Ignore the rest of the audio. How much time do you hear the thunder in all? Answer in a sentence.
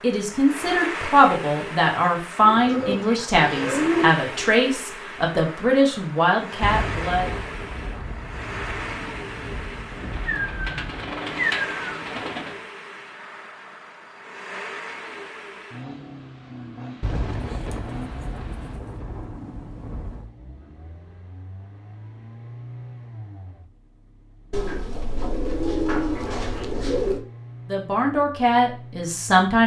You can hear the thunder for 8 seconds altogether.